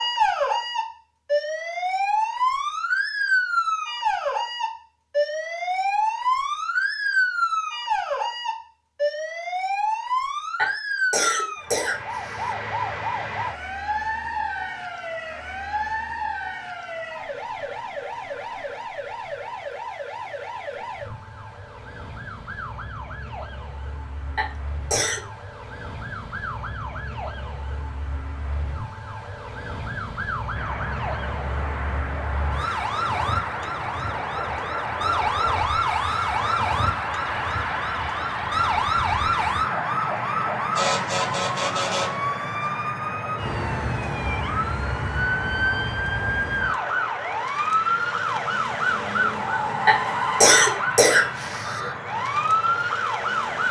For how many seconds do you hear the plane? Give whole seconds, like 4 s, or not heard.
23 s.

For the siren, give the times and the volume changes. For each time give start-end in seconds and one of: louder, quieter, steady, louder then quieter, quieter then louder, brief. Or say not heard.
0.0-53.6 quieter then louder.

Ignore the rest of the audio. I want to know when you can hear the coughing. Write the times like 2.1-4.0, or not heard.
10.6-12.5, 24.4-25.2, 49.9-51.8.